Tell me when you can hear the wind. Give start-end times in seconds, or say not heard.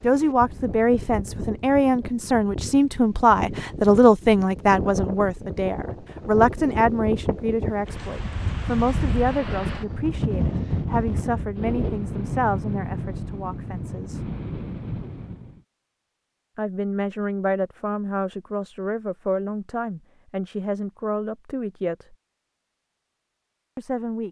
0.0-15.6.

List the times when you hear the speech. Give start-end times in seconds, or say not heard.
0.0-14.2, 16.6-22.1, 23.8-24.2.